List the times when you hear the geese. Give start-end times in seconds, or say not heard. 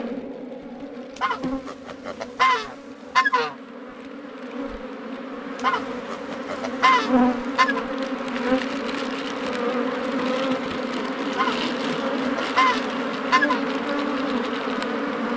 1.1-3.5, 5.5-7.8, 11.3-13.7.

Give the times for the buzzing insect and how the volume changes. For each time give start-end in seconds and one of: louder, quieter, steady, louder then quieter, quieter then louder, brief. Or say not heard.
0.0-15.3 louder.